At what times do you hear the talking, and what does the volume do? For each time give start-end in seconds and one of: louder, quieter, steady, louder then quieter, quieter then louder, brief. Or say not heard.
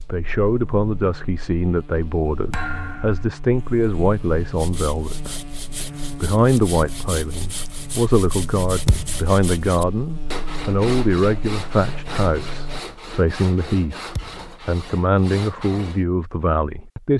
0.1-17.1 steady.